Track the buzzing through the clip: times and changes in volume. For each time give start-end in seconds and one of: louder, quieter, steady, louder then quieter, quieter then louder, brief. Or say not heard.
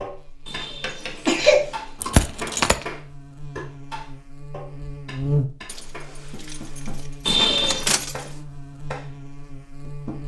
0.0-10.2 louder then quieter.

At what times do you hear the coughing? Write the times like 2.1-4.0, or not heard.
0.5-2.1, 7.2-7.9.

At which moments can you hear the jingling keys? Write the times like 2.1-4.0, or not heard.
2.0-2.9, 5.7-8.3.